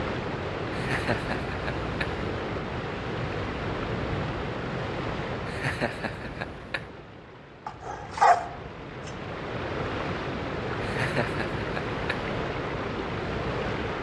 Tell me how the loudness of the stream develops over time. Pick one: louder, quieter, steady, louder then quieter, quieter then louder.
quieter then louder.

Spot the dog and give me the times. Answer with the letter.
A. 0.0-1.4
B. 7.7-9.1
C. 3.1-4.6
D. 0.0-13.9
B.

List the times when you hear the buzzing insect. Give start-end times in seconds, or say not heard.
not heard.